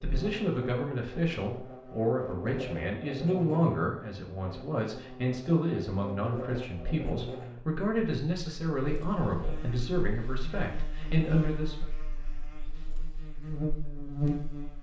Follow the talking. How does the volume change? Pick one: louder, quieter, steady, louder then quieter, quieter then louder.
steady.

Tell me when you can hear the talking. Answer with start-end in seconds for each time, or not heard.
0.0-11.9.